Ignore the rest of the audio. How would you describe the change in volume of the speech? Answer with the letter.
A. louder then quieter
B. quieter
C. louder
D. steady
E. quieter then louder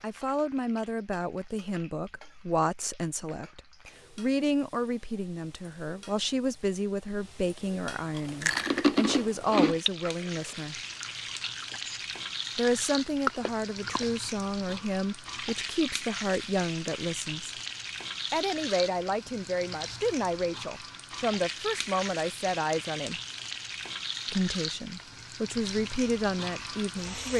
D.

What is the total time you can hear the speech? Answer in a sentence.
You can hear the speech for 24 seconds altogether.